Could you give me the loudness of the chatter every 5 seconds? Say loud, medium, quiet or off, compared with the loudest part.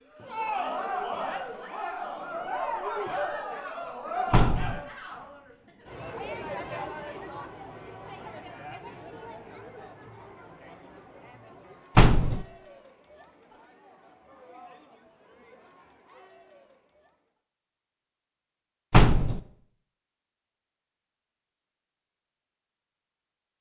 loud, medium, quiet, quiet, off.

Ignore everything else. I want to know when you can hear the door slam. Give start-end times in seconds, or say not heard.
4.3-4.8, 11.9-12.4, 18.9-19.4.